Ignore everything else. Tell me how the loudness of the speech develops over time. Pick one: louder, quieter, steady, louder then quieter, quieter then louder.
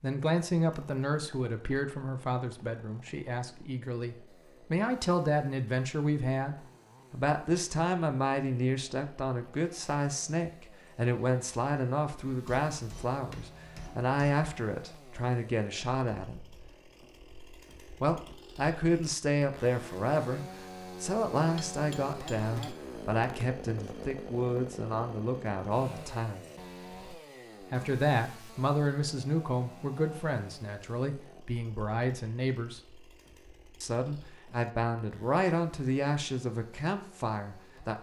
steady.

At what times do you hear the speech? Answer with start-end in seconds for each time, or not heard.
0.0-16.4, 18.0-26.4, 27.7-32.8, 33.8-37.9.